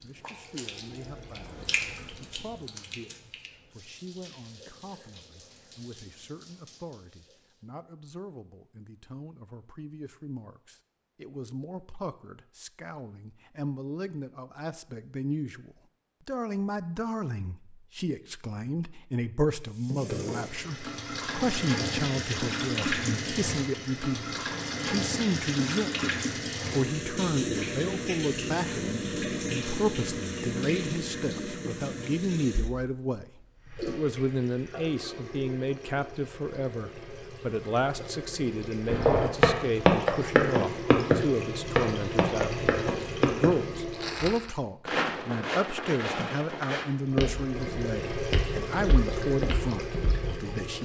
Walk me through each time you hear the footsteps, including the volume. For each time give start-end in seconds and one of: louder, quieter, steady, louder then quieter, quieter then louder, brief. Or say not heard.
38.9-50.4 quieter.